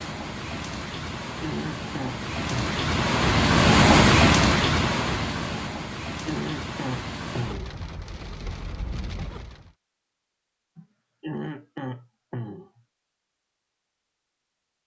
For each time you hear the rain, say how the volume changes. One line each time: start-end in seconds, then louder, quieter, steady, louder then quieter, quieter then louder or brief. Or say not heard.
0.0-9.8 louder then quieter.